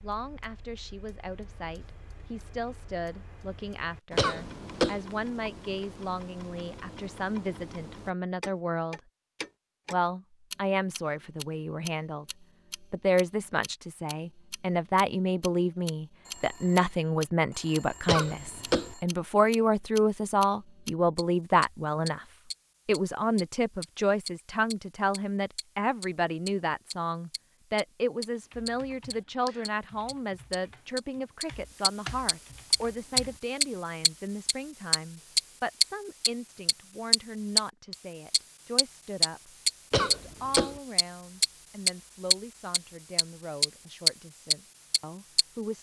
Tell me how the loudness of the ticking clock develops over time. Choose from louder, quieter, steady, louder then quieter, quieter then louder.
louder.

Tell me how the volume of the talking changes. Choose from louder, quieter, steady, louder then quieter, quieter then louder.
louder then quieter.